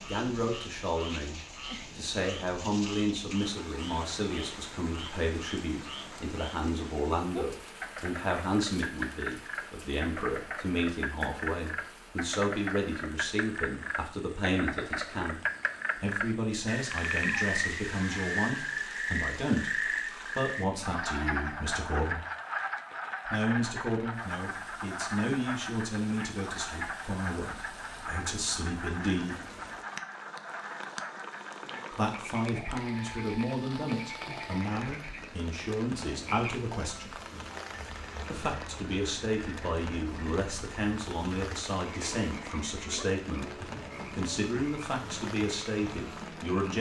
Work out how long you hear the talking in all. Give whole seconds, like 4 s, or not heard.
42 s.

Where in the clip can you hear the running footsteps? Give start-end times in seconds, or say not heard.
not heard.